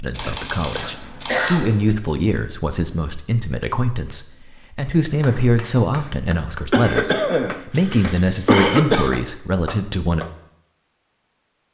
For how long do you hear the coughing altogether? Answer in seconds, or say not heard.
4 s.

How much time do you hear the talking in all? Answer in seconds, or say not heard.
10 s.